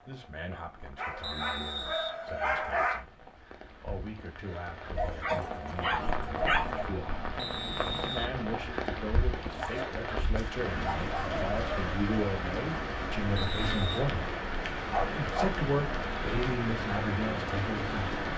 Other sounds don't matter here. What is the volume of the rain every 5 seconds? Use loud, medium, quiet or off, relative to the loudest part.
quiet, loud, loud, loud.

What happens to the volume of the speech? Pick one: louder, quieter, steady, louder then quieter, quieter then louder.
louder.